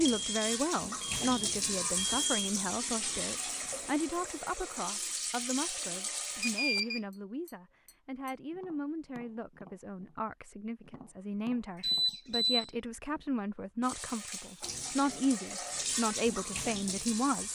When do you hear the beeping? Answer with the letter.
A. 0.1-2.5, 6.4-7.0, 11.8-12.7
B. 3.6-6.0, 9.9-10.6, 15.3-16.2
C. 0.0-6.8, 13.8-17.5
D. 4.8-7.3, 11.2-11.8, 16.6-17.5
A.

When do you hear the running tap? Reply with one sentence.
The running tap can be heard from 0.0 to 6.8 s and from 13.8 to 17.5 s.